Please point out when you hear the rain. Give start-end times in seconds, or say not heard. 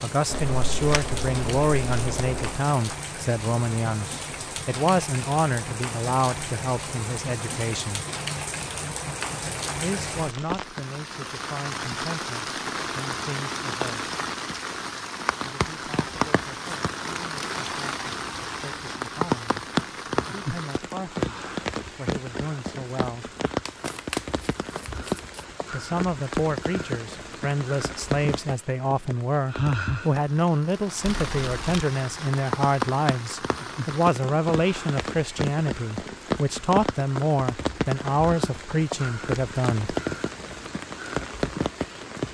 0.0-42.2.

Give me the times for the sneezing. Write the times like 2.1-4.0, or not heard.
not heard.